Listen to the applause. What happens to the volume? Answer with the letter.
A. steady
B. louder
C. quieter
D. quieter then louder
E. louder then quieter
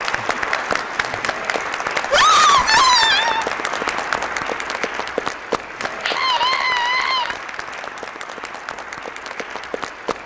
C.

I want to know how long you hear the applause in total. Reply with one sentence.
The applause can be heard for 10 seconds in total.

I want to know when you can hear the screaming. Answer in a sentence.
The screaming can be heard from 2.1 to 3.5 s and from 6.0 to 7.3 s.